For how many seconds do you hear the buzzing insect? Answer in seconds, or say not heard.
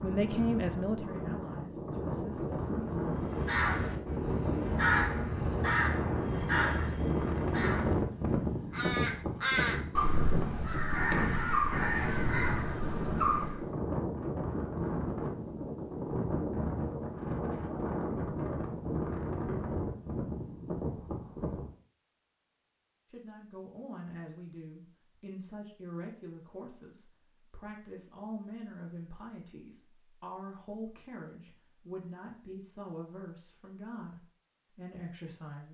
not heard.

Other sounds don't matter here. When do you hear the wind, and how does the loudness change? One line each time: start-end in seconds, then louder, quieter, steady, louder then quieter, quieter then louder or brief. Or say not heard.
0.0-21.8 steady.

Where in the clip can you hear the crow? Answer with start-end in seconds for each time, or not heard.
3.1-13.7.